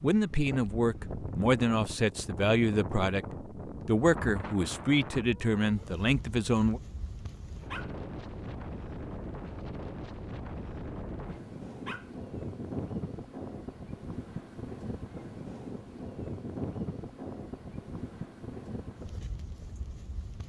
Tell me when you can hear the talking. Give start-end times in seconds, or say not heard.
0.0-6.8.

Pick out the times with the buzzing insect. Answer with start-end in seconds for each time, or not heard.
not heard.